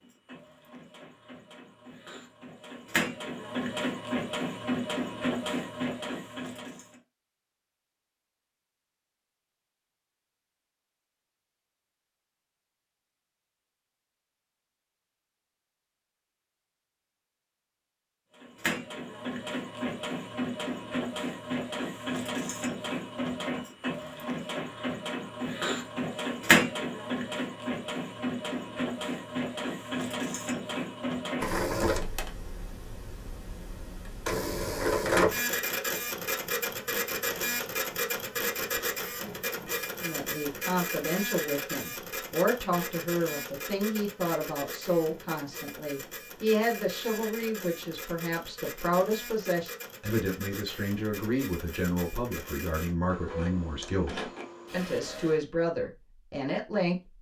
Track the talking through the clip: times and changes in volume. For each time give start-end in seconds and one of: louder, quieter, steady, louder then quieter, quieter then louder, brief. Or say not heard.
40.0-57.0 steady.